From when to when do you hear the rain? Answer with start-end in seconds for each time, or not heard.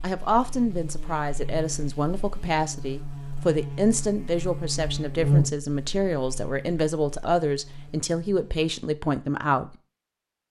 not heard.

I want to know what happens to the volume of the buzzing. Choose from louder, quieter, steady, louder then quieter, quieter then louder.
louder then quieter.